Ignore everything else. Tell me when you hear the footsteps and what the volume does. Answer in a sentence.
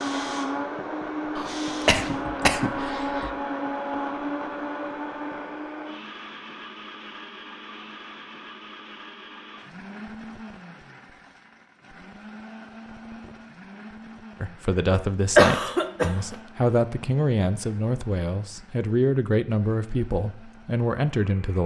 The footsteps can't be heard in this clip.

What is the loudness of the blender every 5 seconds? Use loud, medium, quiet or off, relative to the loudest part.
loud, medium, quiet, quiet, quiet.